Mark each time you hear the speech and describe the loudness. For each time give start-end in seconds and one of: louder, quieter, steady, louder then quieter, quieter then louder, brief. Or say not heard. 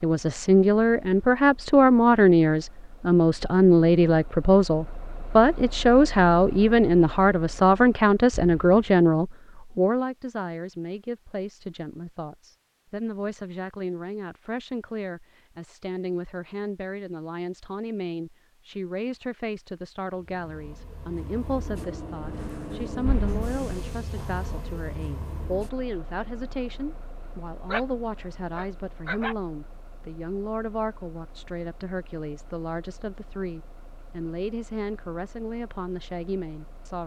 0.0-37.0 quieter.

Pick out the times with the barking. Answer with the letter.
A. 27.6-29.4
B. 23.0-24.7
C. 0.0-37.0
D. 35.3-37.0
A.